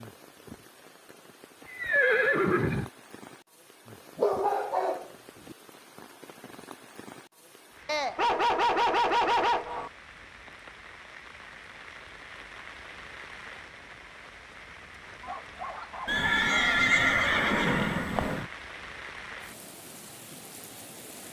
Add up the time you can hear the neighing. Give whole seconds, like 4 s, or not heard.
4 s.